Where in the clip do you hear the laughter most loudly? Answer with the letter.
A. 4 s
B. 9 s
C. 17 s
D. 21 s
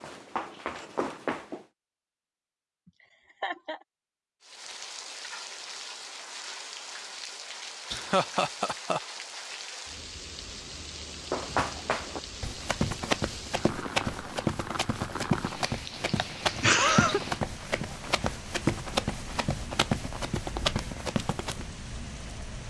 C.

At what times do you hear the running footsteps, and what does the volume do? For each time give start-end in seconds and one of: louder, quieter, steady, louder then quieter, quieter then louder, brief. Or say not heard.
0.0-1.6 brief
11.3-21.6 steady.